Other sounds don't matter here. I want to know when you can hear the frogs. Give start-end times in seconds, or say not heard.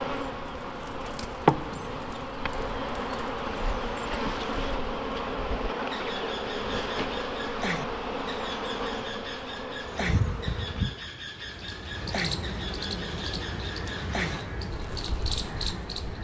not heard.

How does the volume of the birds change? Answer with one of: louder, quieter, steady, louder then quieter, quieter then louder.
louder.